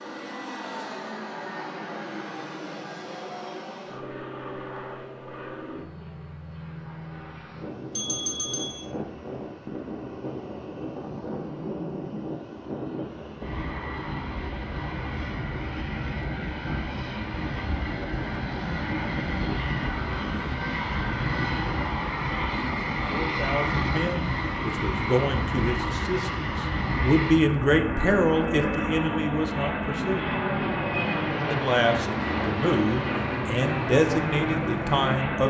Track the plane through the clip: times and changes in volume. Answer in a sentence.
You can hear the plane from 0.0 to 35.4 s, getting louder.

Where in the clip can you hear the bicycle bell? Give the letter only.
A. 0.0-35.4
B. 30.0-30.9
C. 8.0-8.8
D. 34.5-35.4
C.